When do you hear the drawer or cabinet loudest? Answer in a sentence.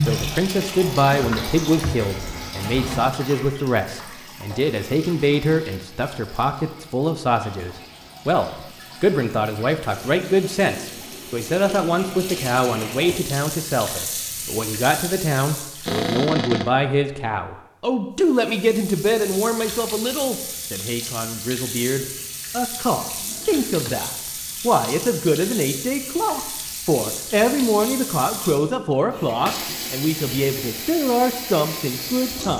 The volume of the drawer or cabinet peaks at 16 seconds.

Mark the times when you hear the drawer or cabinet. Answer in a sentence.
The drawer or cabinet can be heard from 1.1 to 3.1 s, from 15.8 to 16.7 s and from 23.1 to 24.1 s.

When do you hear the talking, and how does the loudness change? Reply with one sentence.
The talking can be heard from 0.0 to 32.5 s, at a steady volume.